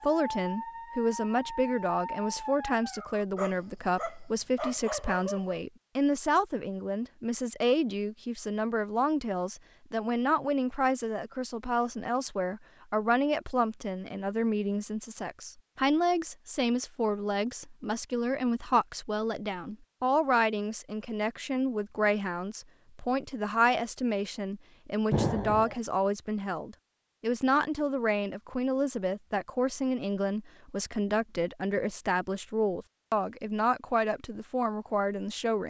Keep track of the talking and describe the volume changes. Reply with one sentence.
The volume of the talking stays about the same.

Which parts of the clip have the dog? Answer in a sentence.
The dog can be heard from 0.0 to 5.6 s.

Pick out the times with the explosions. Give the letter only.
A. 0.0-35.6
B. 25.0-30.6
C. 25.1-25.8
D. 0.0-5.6
C.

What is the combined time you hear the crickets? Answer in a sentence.
You can't hear the crickets here.